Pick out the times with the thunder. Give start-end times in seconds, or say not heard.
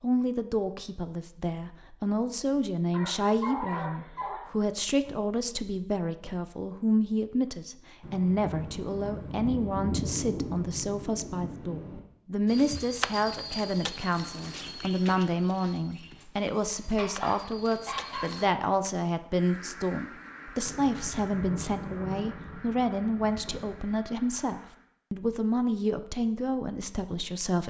8.0-12.0, 20.6-23.9.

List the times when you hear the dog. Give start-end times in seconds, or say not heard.
2.9-4.5, 16.2-18.4.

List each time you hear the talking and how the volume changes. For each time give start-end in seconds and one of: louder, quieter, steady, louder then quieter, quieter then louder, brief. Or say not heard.
0.0-27.6 steady.